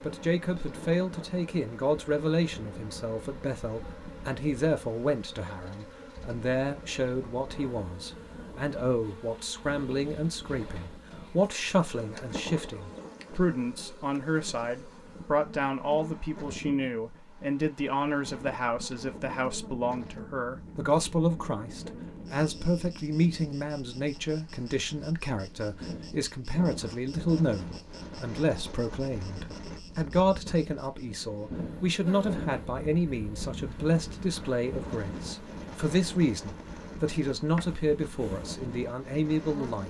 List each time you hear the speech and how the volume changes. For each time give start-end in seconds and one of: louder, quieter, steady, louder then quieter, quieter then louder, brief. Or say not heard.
0.0-39.8 steady.